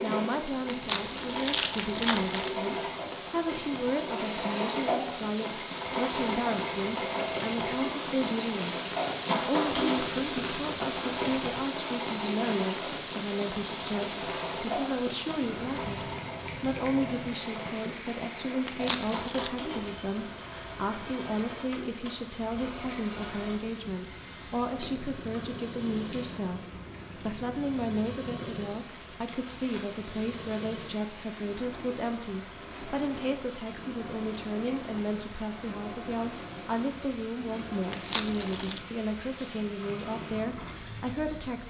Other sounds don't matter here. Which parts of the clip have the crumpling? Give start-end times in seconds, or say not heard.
0.7-2.5, 18.6-19.5, 37.9-38.8.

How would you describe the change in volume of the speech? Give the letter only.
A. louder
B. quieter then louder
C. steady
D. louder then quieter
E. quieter
C.